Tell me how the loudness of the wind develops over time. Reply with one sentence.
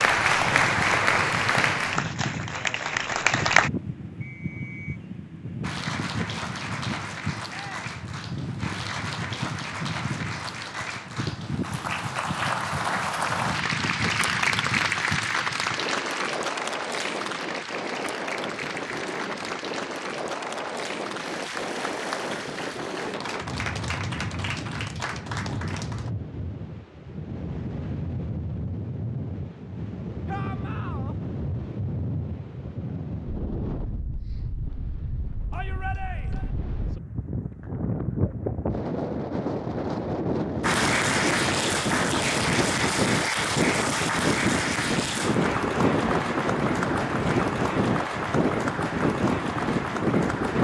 The volume of the wind goes up.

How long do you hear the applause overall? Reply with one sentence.
You can hear the applause for 34 seconds altogether.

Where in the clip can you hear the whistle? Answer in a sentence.
You can hear the whistle from 4.2 to 5.0 s.